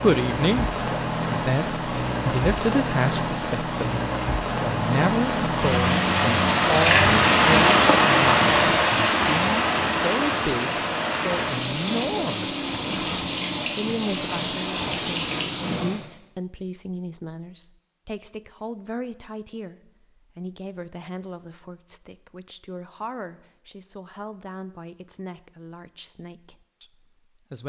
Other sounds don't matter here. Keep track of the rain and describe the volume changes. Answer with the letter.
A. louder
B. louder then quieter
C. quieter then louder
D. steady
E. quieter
B.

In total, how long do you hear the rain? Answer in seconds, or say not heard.
16 s.